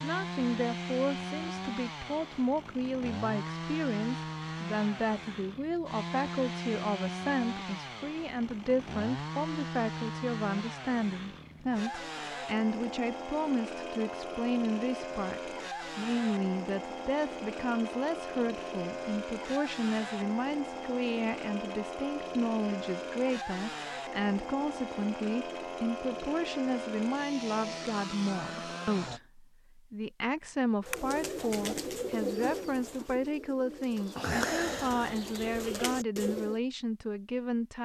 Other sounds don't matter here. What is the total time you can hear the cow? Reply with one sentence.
You can't hear the cow here.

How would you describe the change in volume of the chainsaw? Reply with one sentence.
The loudness of the chainsaw stays about the same.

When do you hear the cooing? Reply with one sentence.
You can hear the cooing from 30.9 to 36.6 s.